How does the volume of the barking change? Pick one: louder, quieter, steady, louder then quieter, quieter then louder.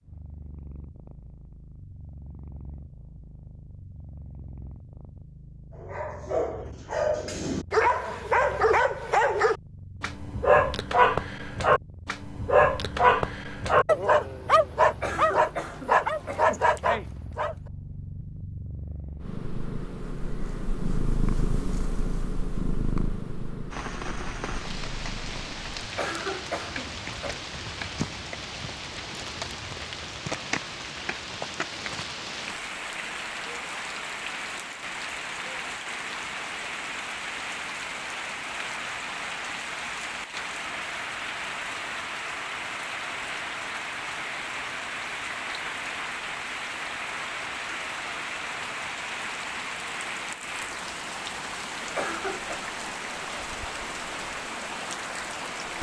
steady.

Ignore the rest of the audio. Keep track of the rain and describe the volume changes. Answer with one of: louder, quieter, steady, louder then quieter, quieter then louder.
steady.